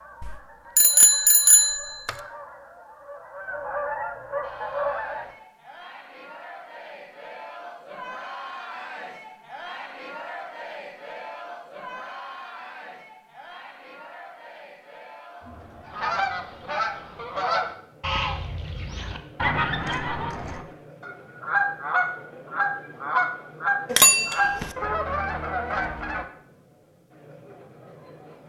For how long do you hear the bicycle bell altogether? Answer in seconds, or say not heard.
3 s.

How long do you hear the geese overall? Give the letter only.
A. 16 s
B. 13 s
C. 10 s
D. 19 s
A.